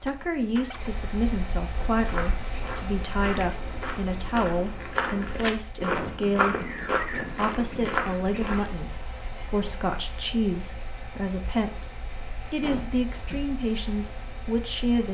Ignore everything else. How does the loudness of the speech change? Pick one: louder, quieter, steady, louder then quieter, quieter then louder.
steady.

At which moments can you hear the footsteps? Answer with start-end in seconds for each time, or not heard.
1.9-8.7.